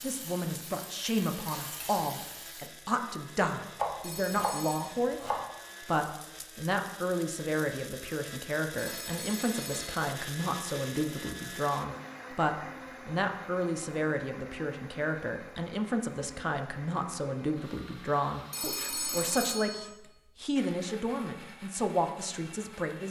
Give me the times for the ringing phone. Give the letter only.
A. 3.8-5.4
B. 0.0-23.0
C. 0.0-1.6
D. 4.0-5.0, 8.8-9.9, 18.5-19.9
D.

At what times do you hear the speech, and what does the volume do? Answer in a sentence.
You can hear the speech from 0.0 to 23.0 s, at a steady volume.